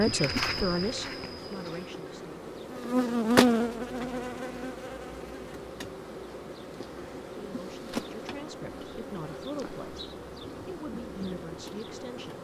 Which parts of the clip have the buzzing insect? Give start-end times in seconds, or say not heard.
0.0-12.3.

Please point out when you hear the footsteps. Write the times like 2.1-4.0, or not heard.
0.0-1.9.